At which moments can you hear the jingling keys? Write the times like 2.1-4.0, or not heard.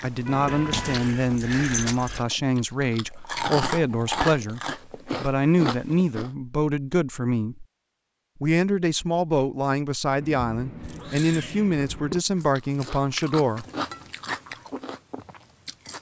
0.5-2.2, 10.8-11.4.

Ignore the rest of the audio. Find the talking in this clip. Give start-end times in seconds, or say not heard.
0.0-7.7, 8.4-13.7.